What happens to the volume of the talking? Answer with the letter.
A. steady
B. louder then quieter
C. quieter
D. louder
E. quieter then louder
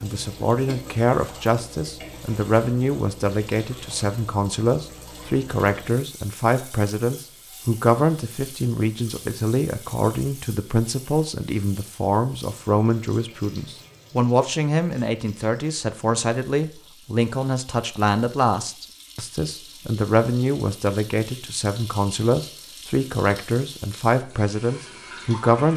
A.